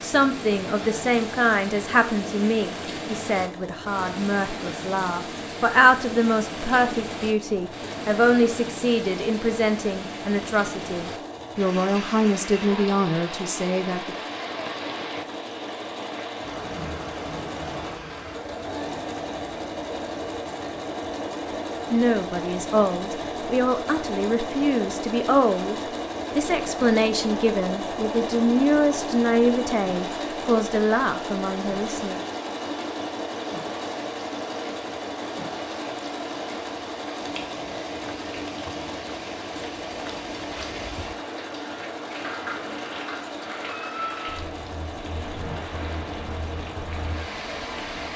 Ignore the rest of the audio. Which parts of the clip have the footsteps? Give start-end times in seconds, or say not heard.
not heard.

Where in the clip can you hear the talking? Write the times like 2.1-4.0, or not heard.
0.0-14.2, 21.9-25.8, 26.4-32.2.